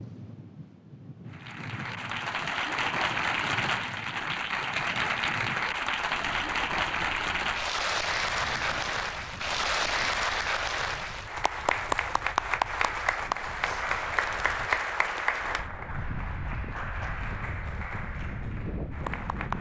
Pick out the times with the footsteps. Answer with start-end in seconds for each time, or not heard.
not heard.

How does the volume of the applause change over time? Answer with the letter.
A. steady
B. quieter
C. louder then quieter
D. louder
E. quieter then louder
B.